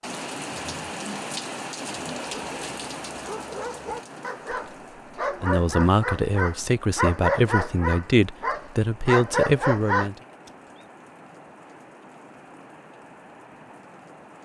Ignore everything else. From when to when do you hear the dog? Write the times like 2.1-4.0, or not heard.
2.2-10.1.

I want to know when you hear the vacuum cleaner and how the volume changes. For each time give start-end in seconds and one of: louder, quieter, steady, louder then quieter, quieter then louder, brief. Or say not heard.
not heard.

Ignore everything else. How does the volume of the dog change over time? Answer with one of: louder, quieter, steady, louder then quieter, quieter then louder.
louder.